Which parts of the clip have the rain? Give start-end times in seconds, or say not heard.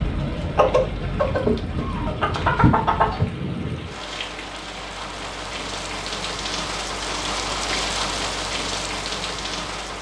0.0-9.9.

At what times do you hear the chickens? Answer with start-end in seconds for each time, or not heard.
0.0-3.3.